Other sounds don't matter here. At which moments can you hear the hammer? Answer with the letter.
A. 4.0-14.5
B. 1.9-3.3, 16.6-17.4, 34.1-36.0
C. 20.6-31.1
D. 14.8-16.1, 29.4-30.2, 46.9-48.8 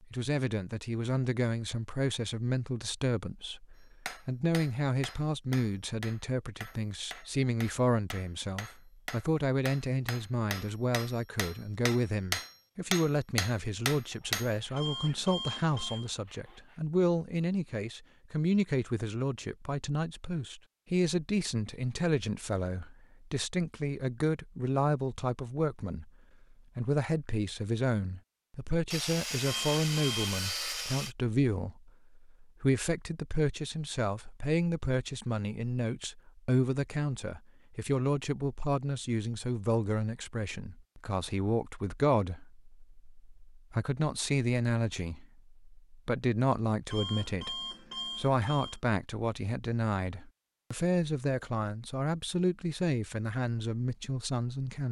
A.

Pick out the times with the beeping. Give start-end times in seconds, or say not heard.
14.8-16.1, 29.4-30.2, 46.9-48.8.